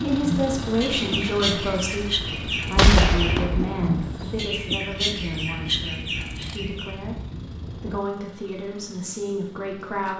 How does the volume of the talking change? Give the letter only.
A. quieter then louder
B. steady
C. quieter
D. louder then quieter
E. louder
A.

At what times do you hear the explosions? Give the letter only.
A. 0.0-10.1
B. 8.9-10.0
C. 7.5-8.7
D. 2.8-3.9
D.